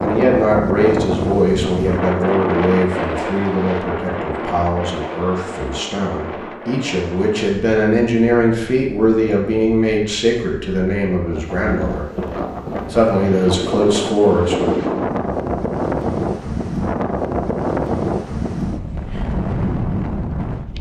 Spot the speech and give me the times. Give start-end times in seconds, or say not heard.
0.0-12.1, 12.9-14.8.